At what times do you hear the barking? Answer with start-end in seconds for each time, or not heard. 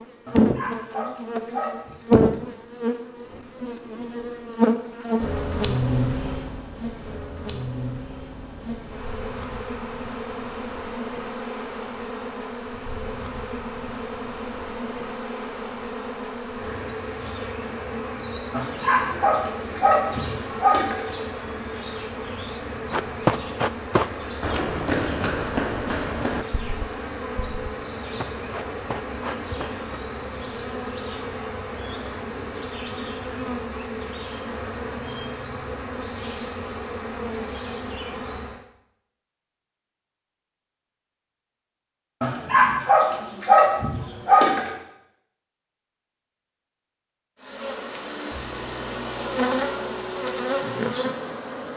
0.2-2.0, 18.5-21.1, 42.2-44.7.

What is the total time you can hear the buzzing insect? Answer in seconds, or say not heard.
43 s.